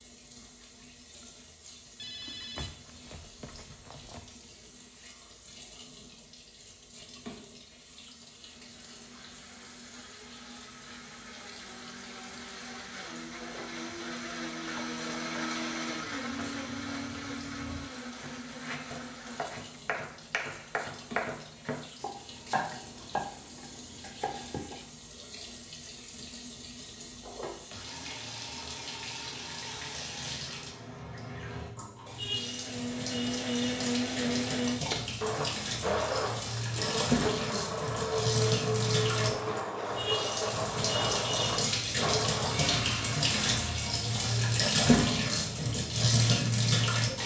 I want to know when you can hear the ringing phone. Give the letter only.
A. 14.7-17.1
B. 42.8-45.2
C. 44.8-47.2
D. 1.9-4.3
D.